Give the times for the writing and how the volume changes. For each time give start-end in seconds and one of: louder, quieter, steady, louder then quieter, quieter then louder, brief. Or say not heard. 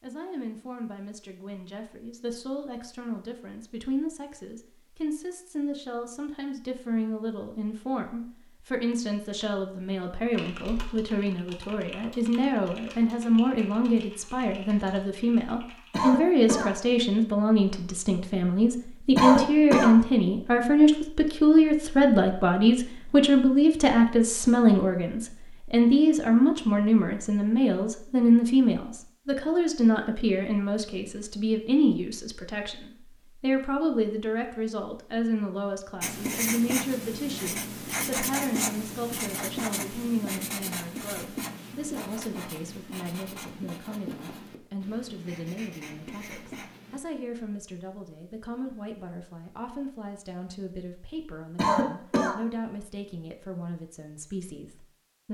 36.0-47.0 quieter.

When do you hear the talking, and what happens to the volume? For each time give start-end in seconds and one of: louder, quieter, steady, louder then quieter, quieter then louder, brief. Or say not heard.
0.0-55.2 louder then quieter.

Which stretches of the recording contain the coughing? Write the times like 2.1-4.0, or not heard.
15.9-16.7, 19.1-19.9, 51.5-52.4.